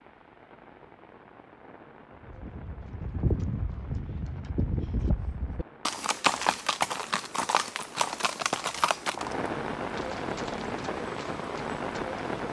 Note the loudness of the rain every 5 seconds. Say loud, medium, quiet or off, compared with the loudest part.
quiet, medium, loud.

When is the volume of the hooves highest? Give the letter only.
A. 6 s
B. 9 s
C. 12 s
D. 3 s
A.